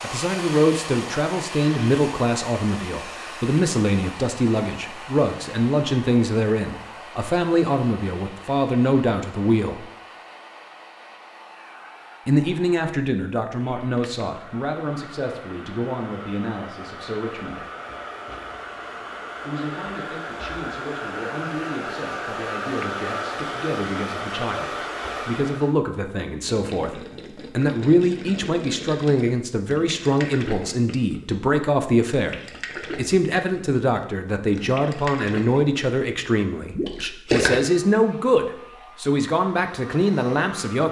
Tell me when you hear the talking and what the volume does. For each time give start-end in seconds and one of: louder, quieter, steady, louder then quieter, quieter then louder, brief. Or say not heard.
0.0-9.9 steady
12.2-17.7 quieter
19.4-40.8 louder.